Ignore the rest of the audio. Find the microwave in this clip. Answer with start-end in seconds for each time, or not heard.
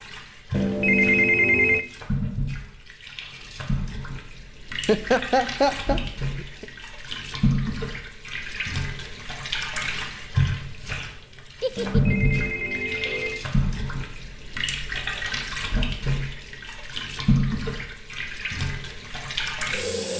not heard.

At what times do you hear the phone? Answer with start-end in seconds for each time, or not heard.
0.5-1.9, 11.8-13.4.